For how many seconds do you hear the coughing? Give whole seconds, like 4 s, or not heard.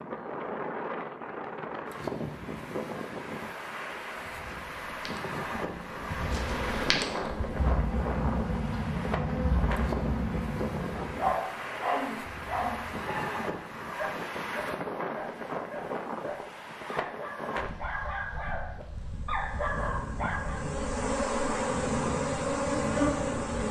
2 s.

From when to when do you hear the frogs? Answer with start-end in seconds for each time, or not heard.
not heard.